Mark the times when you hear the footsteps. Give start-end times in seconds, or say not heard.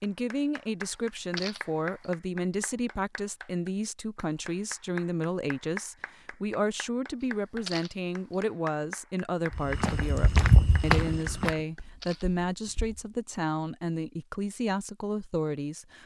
9.5-13.1.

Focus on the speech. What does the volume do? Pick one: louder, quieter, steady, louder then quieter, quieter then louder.
steady.